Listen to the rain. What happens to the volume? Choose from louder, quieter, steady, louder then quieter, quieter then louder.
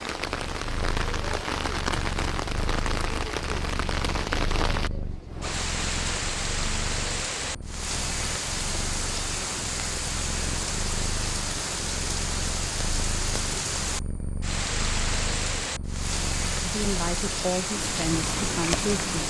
steady.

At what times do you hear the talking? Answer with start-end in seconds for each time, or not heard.
16.6-19.1.